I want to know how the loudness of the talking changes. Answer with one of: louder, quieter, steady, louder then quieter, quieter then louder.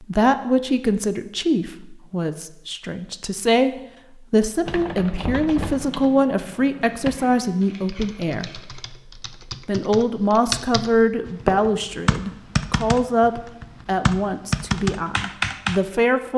steady.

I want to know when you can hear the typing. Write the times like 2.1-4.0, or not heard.
4.7-15.8.